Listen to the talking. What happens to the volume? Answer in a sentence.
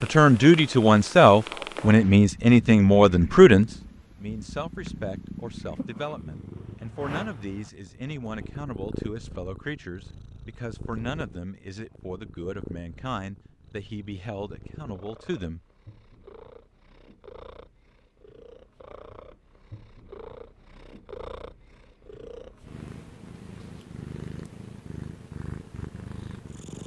The loudness of the talking goes down.